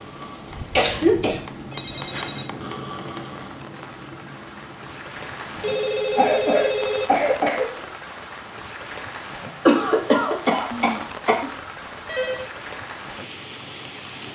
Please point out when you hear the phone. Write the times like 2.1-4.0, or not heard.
1.5-2.5, 5.5-7.5, 10.7-12.5.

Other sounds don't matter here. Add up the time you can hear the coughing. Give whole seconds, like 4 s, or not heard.
4 s.